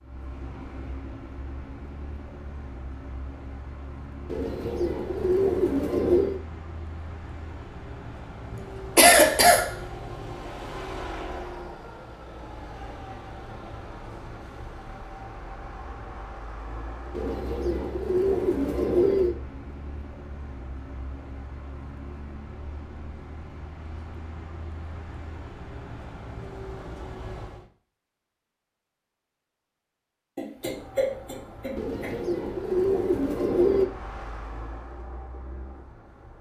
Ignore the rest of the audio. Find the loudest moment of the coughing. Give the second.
9 s.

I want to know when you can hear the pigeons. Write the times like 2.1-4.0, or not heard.
4.2-6.4, 17.1-19.4, 31.8-33.9.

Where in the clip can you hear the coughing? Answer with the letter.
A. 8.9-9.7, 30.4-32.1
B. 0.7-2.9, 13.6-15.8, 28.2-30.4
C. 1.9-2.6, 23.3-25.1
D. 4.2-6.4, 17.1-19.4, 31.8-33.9
A.